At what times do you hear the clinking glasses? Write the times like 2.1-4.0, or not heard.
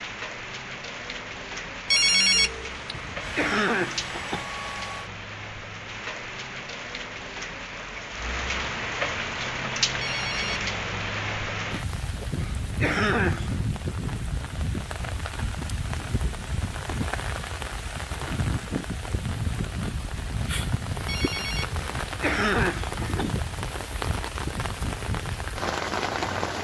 not heard.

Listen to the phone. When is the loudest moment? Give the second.
2 s.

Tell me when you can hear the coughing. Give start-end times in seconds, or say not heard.
2.9-4.5, 12.3-13.7, 21.8-23.3.